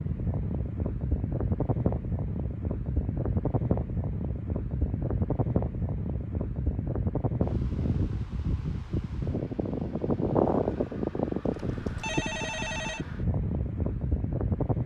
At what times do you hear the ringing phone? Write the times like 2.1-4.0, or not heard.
11.5-13.1.